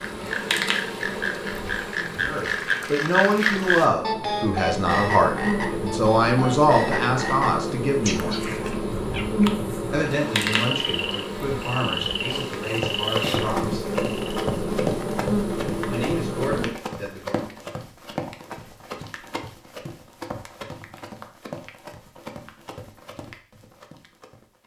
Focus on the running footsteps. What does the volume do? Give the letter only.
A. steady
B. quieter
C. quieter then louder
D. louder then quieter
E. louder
B.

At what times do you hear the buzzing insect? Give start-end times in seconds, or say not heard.
0.0-16.8.